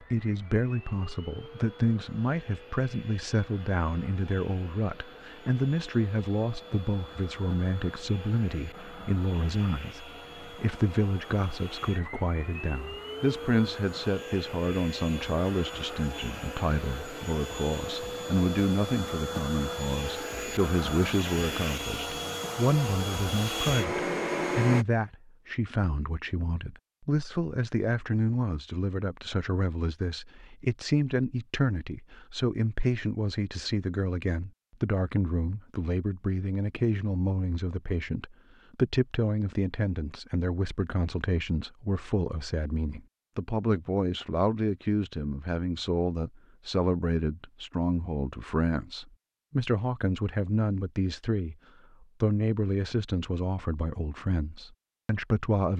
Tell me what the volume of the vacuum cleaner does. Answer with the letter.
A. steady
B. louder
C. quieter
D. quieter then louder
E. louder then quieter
B.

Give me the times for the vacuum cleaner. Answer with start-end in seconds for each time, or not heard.
0.0-24.9.